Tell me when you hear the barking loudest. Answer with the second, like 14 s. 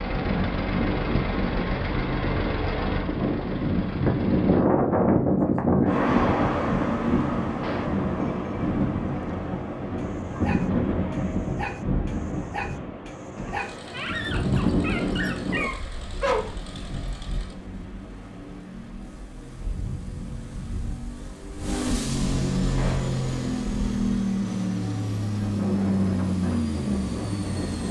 16 s.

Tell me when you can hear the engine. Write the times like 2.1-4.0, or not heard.
0.0-4.7, 13.2-27.8.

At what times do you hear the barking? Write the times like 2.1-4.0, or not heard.
9.9-16.5.